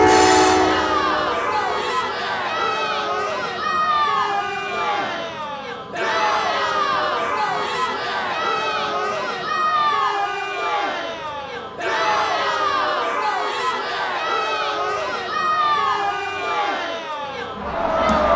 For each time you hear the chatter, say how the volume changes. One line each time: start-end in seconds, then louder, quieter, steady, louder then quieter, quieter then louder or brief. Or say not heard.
0.1-18.3 steady.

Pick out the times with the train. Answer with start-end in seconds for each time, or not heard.
0.0-1.9.